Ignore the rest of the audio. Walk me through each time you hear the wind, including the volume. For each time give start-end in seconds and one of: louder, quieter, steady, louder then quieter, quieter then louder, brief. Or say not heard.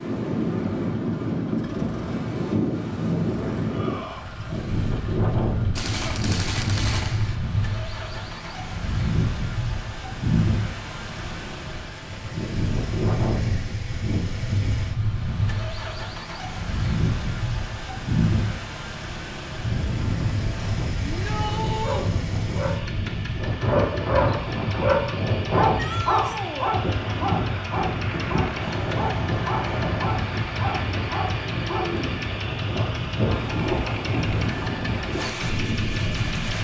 0.0-36.5 steady.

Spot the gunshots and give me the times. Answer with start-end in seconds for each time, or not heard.
5.8-7.4.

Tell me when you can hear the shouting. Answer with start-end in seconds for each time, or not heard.
3.6-4.2, 21.0-22.1, 25.8-26.8.